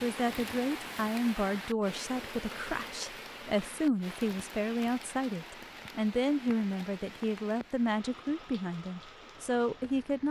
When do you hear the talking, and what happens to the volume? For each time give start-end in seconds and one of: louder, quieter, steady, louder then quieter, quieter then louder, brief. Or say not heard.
0.0-10.2 steady.